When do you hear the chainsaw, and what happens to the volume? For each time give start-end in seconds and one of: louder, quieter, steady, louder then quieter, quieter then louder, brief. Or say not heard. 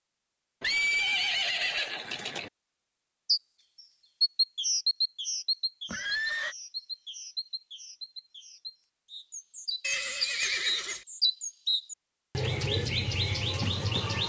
not heard.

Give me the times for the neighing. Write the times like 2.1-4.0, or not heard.
0.6-2.5, 5.8-6.5, 9.8-11.0.